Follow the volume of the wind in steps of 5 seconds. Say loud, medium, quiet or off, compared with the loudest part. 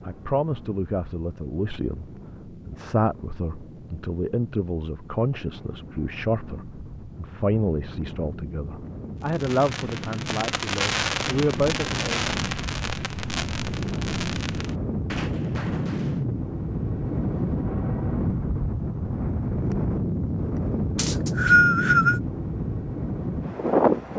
quiet, quiet, medium, loud, loud.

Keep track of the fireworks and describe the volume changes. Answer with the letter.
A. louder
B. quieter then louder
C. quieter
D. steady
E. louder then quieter
C.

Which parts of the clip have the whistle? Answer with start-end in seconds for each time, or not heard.
20.9-22.2.